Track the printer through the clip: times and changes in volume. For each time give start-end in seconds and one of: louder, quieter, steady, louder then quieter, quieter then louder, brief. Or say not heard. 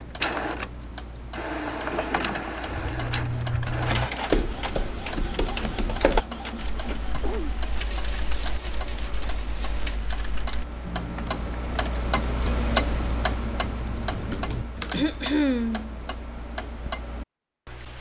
0.0-10.0 quieter.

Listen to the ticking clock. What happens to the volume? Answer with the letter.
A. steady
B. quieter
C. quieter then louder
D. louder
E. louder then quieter
E.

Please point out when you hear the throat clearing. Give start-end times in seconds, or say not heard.
1.8-2.4, 6.8-7.5, 14.9-15.9.